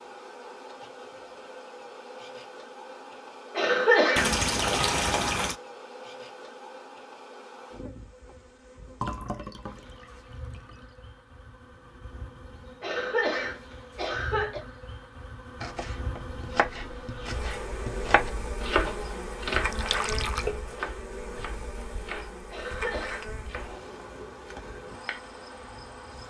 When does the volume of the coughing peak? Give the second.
4 s.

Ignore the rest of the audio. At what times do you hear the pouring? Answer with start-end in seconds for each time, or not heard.
4.2-5.5, 9.0-10.8, 19.7-20.4.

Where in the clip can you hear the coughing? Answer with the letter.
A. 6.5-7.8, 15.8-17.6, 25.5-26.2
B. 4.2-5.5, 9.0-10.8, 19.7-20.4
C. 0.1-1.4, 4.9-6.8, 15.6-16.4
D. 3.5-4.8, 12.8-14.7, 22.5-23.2
D.